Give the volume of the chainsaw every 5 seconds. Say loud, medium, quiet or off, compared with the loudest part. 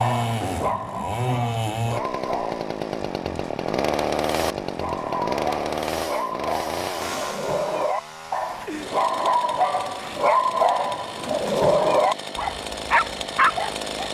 loud, loud, medium.